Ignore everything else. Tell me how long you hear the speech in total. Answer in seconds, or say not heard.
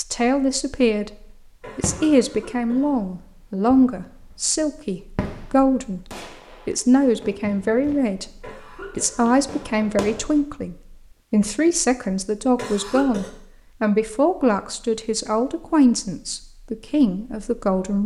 17 s.